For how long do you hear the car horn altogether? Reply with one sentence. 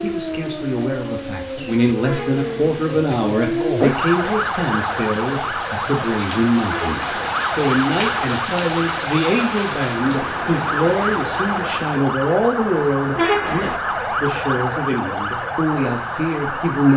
The car horn can be heard for 2 seconds in total.